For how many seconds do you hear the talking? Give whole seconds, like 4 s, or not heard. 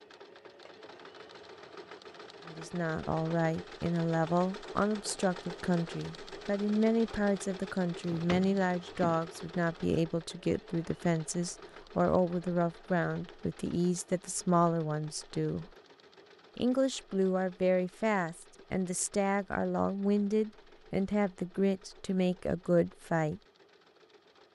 20 s.